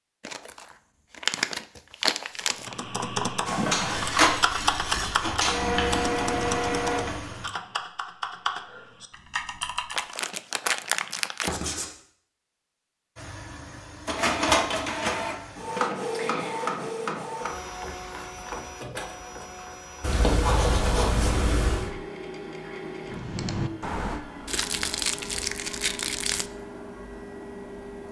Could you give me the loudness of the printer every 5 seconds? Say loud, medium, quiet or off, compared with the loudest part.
loud, loud, loud, medium, quiet, quiet.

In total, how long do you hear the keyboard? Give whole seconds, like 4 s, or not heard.
10 s.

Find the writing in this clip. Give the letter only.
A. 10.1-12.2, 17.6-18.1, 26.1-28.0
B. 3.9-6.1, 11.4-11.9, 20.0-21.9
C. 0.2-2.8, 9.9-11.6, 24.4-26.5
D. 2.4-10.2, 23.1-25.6
B.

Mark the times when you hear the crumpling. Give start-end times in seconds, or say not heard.
0.2-2.8, 9.9-11.6, 24.4-26.5.